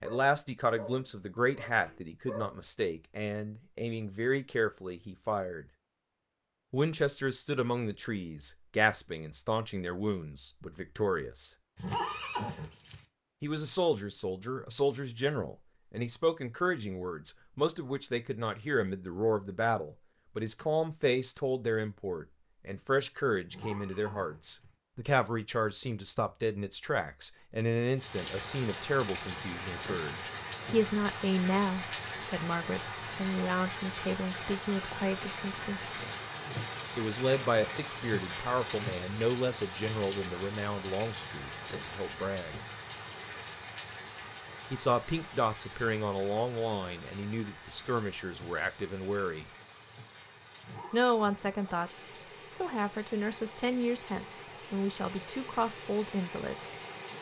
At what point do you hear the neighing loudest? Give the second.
12 s.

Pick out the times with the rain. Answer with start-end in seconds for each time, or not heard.
27.9-57.1.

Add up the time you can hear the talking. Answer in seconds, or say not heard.
49 s.